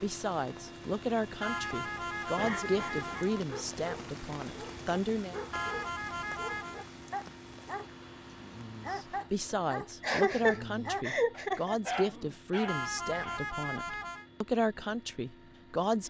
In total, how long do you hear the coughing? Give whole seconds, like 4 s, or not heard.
3 s.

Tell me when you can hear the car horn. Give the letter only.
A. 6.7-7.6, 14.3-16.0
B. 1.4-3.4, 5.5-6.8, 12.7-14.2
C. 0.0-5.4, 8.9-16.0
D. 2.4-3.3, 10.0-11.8
B.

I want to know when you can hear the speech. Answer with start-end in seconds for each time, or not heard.
0.0-5.4, 8.9-16.0.